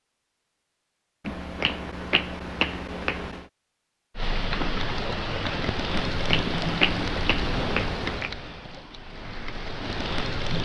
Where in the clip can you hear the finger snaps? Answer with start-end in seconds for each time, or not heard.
1.2-3.5, 6.0-8.3.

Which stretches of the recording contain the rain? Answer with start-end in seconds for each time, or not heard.
4.2-10.6.